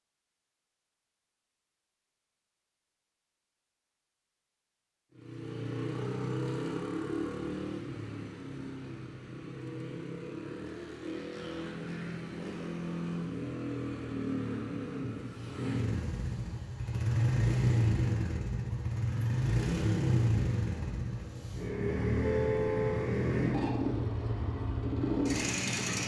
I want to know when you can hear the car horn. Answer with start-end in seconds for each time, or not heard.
22.2-23.1.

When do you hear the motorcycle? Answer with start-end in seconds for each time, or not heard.
5.2-26.0.